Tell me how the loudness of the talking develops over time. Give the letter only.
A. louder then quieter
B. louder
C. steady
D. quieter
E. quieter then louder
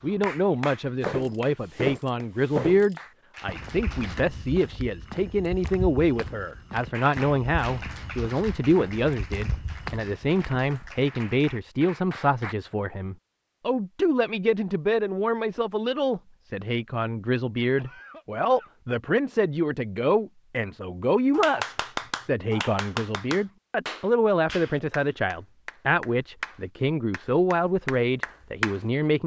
C.